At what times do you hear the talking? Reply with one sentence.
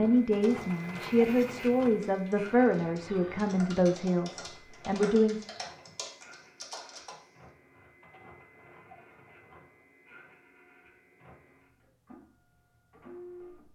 You can hear the talking from 0.0 to 5.5 s.